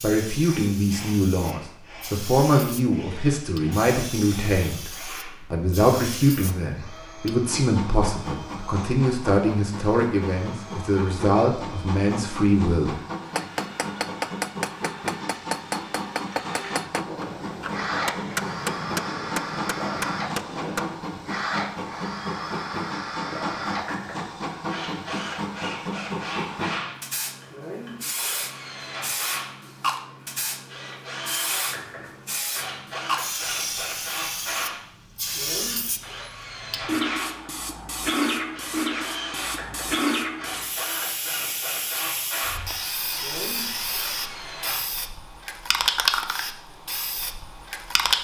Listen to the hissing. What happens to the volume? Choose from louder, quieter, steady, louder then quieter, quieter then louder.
louder.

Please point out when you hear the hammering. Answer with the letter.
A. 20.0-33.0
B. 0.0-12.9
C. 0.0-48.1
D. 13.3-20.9
D.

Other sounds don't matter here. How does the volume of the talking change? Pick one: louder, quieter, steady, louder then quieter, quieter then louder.
steady.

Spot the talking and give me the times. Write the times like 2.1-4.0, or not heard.
0.0-12.9.